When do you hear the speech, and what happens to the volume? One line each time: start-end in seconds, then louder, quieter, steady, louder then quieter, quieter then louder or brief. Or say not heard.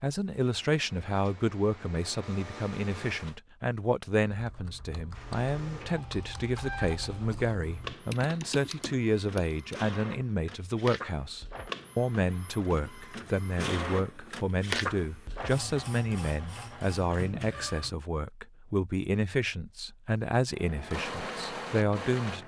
0.0-22.4 steady.